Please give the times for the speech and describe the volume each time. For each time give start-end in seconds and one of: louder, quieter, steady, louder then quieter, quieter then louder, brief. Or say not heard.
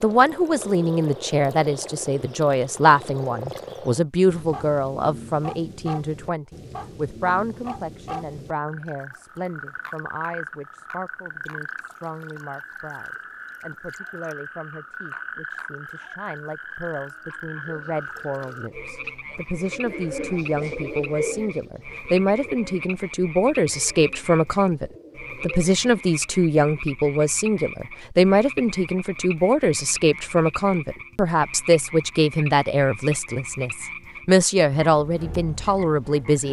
0.0-36.4 quieter then louder.